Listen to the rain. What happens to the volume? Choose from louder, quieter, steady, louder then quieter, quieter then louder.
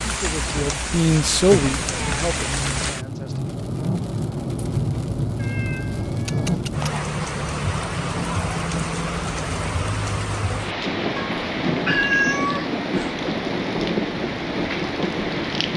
steady.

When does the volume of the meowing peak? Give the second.
12 s.